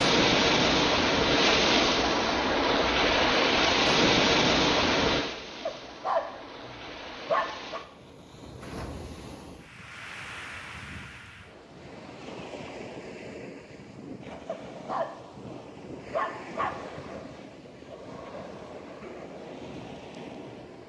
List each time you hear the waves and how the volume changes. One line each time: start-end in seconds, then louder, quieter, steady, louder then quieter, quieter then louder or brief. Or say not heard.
0.0-20.8 quieter.